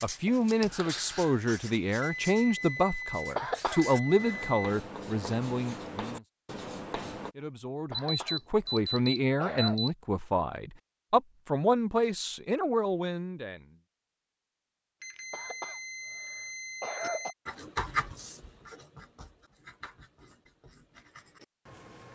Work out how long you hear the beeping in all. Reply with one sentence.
You can hear the beeping for 7 seconds altogether.